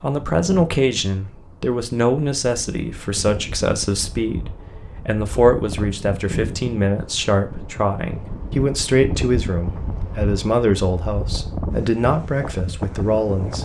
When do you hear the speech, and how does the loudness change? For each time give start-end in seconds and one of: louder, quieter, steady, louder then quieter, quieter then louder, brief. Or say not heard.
0.0-13.5 steady.